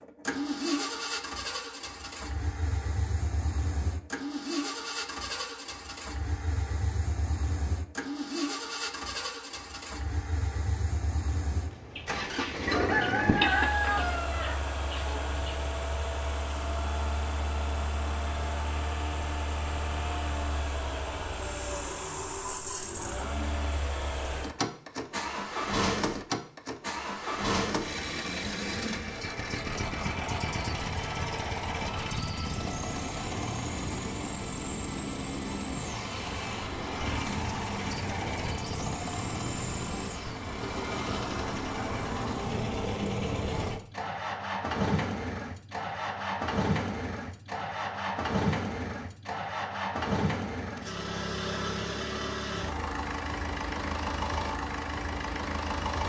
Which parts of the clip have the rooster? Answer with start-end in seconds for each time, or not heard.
11.9-15.6.